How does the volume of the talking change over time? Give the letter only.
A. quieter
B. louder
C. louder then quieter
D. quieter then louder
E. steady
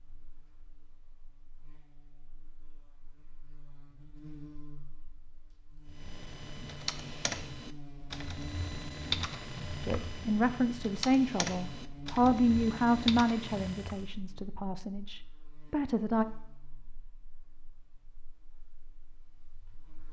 A.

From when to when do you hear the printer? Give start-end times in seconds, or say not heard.
not heard.